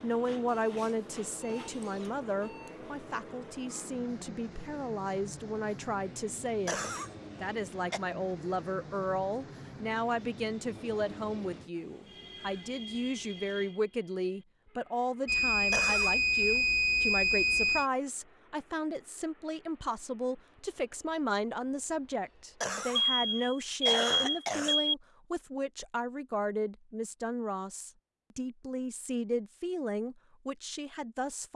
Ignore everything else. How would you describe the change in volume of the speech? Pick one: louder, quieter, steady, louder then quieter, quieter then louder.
steady.